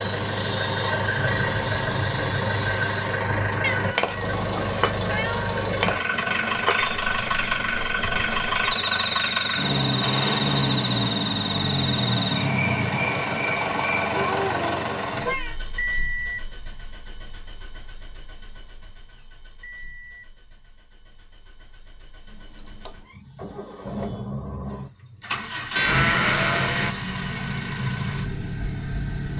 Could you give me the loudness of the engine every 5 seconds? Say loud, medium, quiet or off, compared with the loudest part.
loud, loud, loud, medium, quiet, loud.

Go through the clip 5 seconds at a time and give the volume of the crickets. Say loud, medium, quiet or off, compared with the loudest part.
loud, loud, loud, off, off, off.